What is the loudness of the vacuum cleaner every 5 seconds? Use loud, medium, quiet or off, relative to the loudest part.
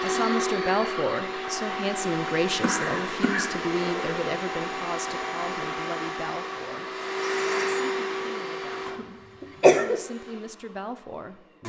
loud, loud, quiet.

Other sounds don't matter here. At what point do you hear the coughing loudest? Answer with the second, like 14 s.
10 s.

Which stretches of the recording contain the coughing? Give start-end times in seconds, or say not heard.
2.6-4.1, 8.8-10.0.